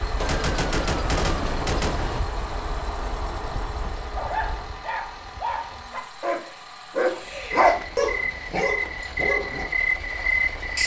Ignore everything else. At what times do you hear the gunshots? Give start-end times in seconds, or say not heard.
0.2-2.2.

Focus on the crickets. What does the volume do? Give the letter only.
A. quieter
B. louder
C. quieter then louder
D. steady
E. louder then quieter
C.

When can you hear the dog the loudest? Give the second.
8 s.